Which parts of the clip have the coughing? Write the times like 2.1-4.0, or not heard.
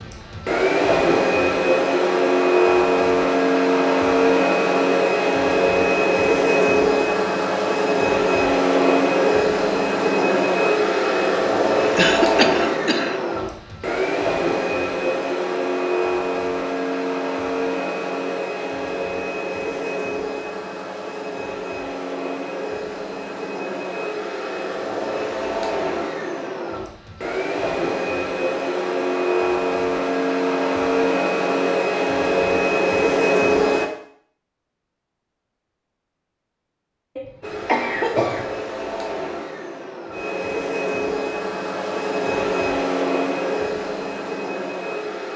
11.9-13.2, 37.1-38.5.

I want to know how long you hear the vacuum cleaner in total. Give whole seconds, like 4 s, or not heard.
42 s.